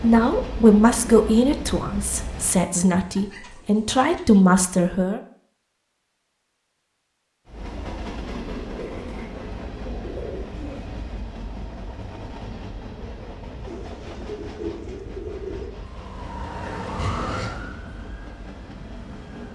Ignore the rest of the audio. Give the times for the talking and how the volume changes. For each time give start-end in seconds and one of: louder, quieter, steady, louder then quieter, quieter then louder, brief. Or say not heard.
0.0-5.2 quieter then louder.